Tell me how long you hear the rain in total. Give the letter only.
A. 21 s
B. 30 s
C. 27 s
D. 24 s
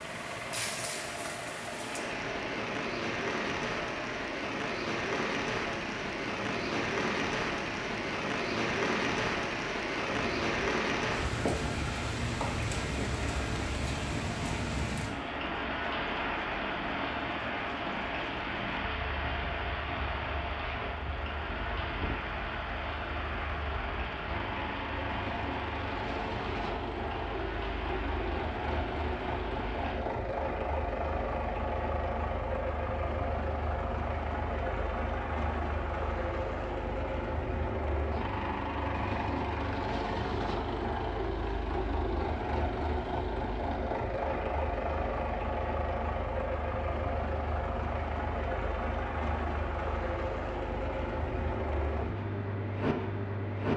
B.